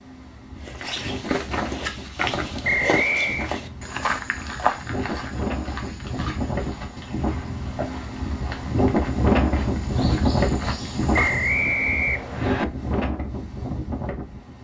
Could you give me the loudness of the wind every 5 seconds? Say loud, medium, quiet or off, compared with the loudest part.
medium, loud, loud.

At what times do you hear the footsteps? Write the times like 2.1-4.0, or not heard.
0.6-11.6.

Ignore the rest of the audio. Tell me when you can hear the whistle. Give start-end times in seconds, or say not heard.
2.6-3.5, 11.1-12.7.